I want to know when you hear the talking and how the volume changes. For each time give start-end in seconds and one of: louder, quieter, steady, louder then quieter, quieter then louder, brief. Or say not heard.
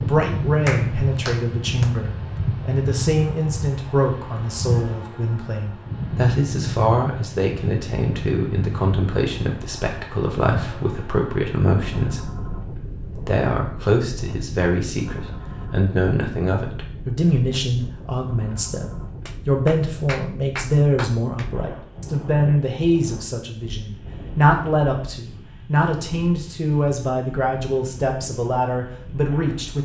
0.0-29.8 steady.